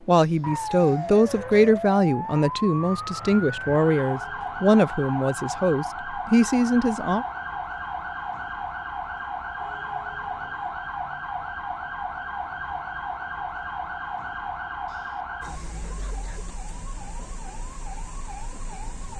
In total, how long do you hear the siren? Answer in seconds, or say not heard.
19 s.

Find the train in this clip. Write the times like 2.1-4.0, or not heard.
not heard.